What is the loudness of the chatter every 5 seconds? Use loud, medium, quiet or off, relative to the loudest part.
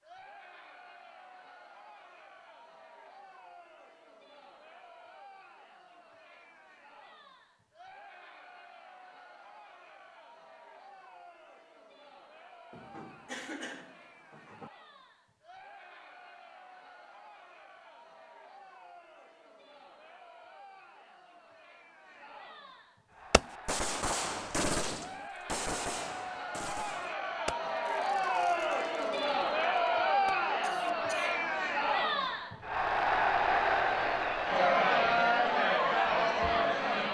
quiet, quiet, quiet, quiet, quiet, medium, loud, loud.